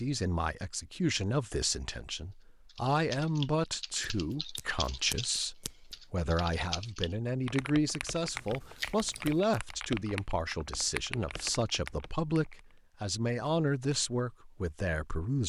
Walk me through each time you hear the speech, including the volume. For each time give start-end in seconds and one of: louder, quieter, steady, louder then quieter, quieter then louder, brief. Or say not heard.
0.0-15.4 steady.